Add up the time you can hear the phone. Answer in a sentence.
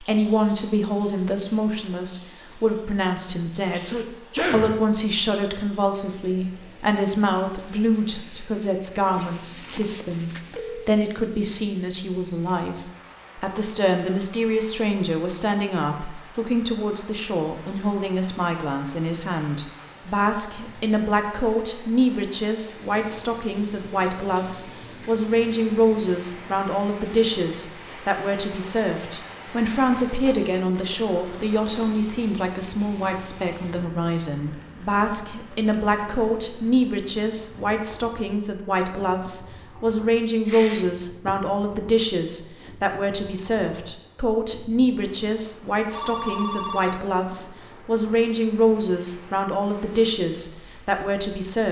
You can hear the phone for 3 seconds altogether.